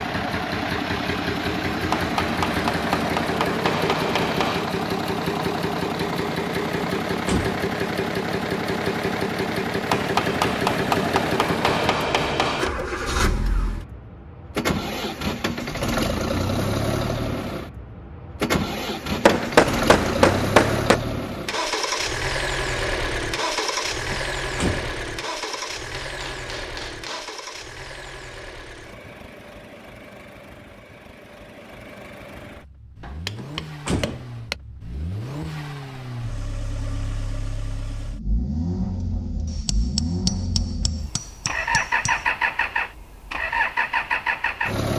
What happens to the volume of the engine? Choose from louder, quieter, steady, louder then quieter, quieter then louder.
quieter then louder.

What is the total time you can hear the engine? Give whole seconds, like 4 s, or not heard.
45 s.